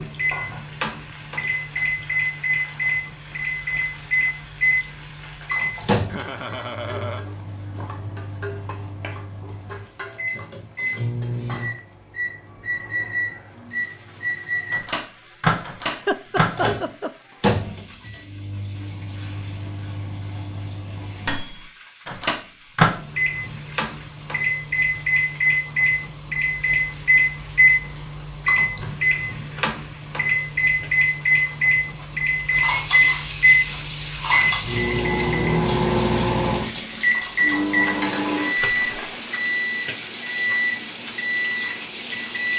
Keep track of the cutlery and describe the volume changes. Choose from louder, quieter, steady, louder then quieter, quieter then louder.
quieter.